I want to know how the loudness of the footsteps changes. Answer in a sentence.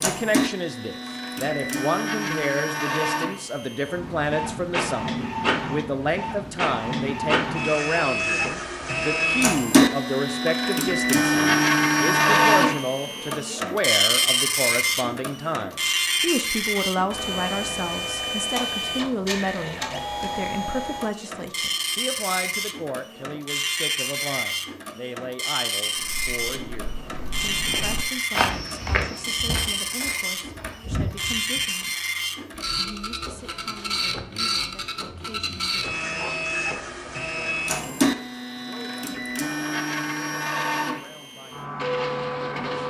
The volume of the footsteps goes up, then down.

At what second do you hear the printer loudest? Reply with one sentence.
The volume of the printer peaks at 12 seconds.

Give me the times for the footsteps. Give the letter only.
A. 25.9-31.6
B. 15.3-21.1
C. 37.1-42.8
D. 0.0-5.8
A.